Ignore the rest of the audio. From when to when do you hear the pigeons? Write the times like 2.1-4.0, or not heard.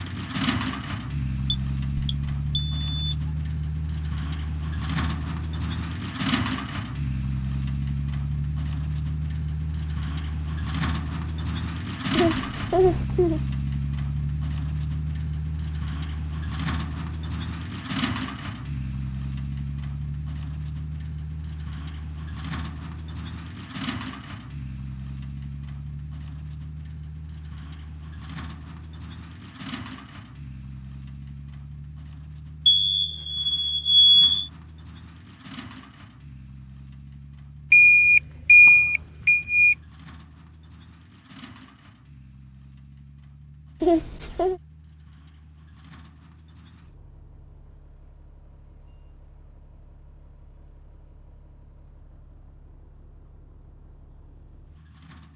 not heard.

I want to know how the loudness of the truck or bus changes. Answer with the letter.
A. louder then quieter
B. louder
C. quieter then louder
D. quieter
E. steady
D.